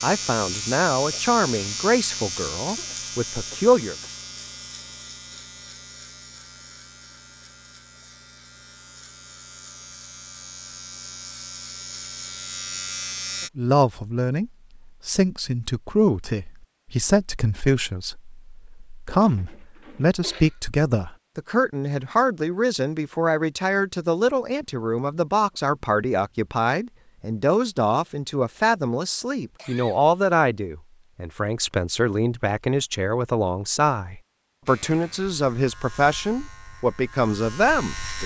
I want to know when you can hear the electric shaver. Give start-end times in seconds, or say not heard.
0.0-13.5, 34.6-38.2.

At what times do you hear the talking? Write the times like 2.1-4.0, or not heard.
0.0-4.0, 13.6-38.2.